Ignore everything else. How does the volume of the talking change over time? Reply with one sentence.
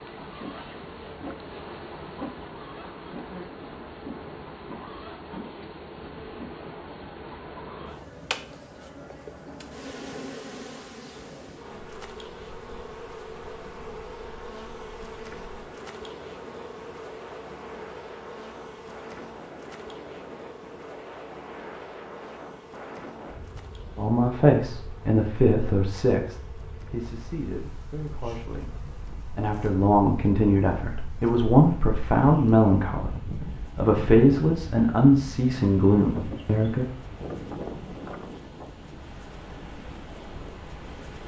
The volume of the talking goes down, then up.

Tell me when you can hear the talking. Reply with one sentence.
The talking can be heard from 23.9 to 36.9 s.